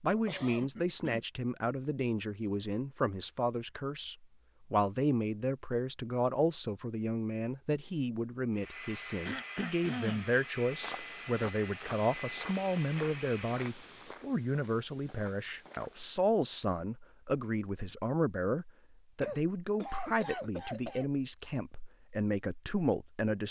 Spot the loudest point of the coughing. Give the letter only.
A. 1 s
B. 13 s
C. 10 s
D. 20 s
C.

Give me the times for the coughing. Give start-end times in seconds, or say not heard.
0.1-1.2, 9.2-10.3, 19.2-21.1.